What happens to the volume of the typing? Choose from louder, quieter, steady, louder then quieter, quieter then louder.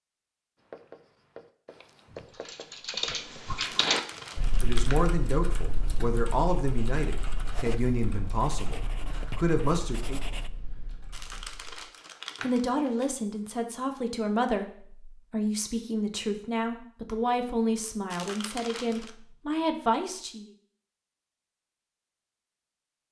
quieter.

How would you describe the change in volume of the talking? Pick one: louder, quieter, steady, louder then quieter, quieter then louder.
steady.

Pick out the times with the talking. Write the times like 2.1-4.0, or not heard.
4.6-10.2, 12.4-20.5.